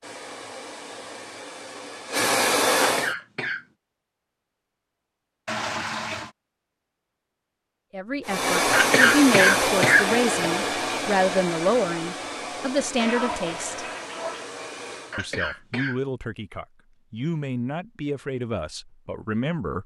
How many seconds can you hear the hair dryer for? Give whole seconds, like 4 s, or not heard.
10 s.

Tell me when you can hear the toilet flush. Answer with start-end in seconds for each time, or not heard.
5.5-6.3, 12.9-14.5.